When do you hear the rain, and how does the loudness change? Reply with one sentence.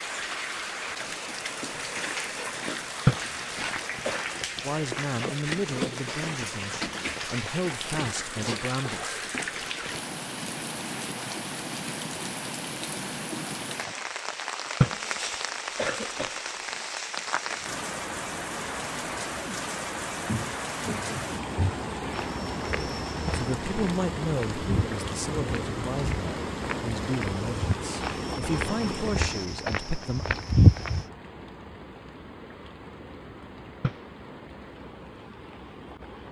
You can hear the rain from 0.0 to 36.2 s, getting quieter.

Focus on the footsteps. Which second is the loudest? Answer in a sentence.
The volume of the footsteps peaks at 31 seconds.